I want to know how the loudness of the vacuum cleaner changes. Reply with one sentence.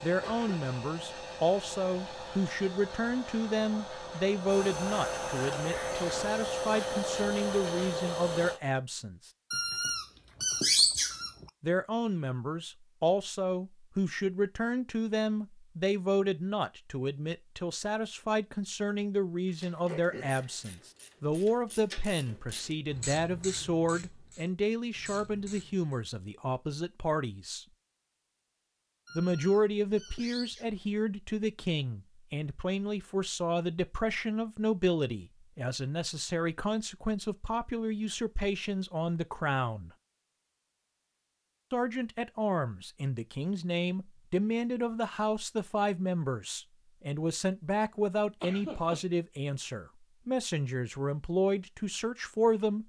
The volume of the vacuum cleaner goes up.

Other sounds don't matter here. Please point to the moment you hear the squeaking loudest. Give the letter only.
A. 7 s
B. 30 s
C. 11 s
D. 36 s
C.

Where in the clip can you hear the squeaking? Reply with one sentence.
The squeaking can be heard from 9.5 to 11.4 s and from 29.1 to 30.6 s.